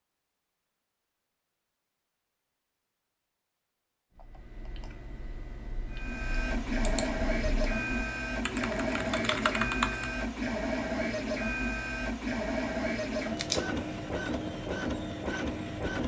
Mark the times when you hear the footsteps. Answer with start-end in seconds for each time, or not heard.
not heard.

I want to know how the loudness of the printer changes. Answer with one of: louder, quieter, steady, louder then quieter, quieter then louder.
steady.